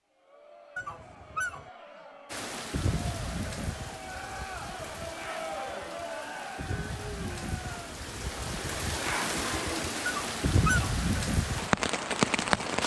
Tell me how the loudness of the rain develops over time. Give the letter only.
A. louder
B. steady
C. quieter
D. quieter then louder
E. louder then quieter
D.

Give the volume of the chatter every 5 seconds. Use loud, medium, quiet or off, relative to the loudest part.
medium, loud, off.